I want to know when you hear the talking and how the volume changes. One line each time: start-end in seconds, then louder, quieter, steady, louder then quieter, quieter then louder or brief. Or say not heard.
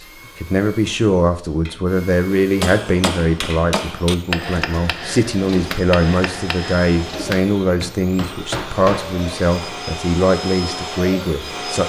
0.0-11.8 steady.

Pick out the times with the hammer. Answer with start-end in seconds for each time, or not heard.
2.6-9.7.